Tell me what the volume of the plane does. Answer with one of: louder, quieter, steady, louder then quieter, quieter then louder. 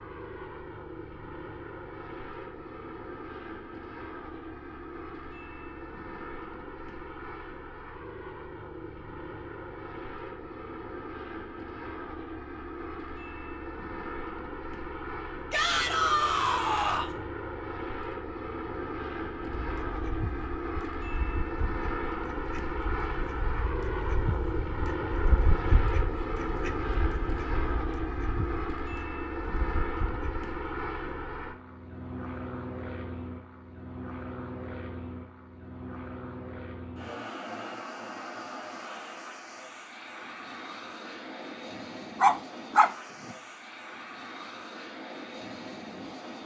louder then quieter.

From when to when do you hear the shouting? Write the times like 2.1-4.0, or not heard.
15.5-17.1.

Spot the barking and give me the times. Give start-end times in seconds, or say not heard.
42.2-43.4.